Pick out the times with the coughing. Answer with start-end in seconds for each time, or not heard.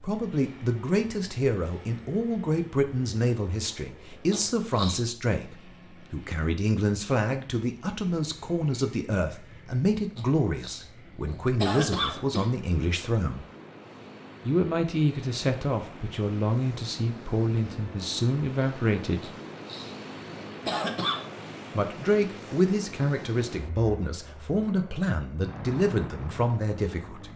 4.3-5.0, 10.2-12.5, 19.2-21.3.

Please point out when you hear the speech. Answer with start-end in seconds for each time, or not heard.
0.0-13.4, 14.4-19.4, 21.7-27.3.